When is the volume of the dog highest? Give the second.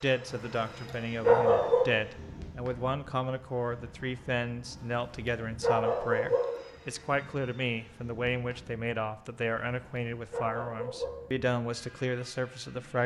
1 s.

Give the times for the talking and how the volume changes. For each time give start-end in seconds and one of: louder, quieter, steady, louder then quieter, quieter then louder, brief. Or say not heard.
0.0-13.0 steady.